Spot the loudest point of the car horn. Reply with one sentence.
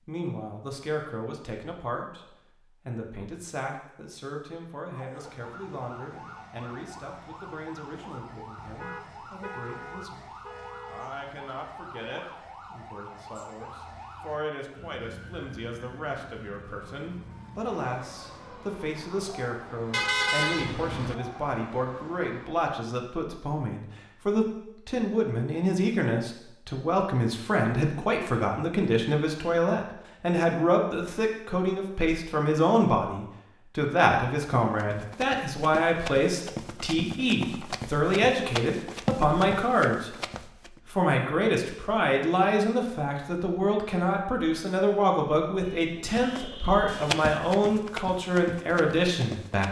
The volume of the car horn peaks at 20 seconds.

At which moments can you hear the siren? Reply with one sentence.
You can hear the siren from 4.9 to 22.6 s.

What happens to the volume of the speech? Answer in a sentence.
The loudness of the speech goes up.